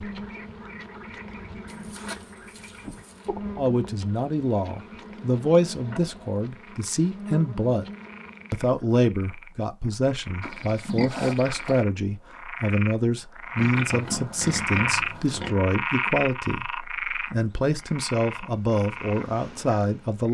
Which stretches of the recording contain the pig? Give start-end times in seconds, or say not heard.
1.6-3.3, 10.4-11.8, 13.6-15.6.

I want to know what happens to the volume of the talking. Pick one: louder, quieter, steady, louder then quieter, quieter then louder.
steady.